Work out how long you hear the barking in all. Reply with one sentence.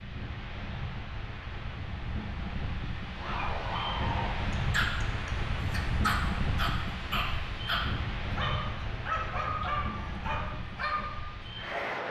You can hear the barking for 9 seconds altogether.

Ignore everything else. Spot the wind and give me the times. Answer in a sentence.
You can hear the wind from 0.0 to 12.0 s.